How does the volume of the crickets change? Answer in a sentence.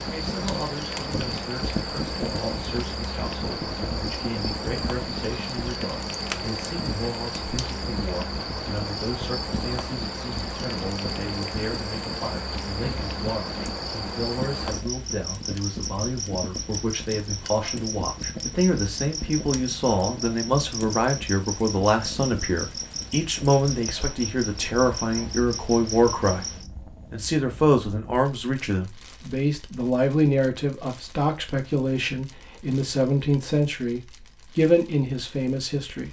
The loudness of the crickets stays about the same.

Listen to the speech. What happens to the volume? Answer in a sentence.
The loudness of the speech goes up.